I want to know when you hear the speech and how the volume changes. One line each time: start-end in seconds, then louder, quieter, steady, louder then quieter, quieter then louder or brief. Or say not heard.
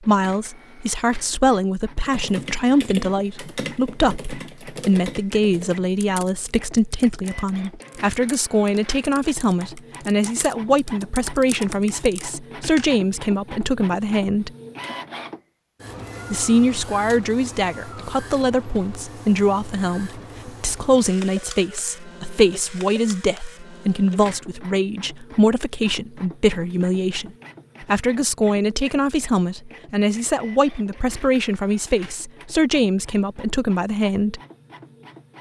0.1-14.5 steady
16.3-34.4 steady.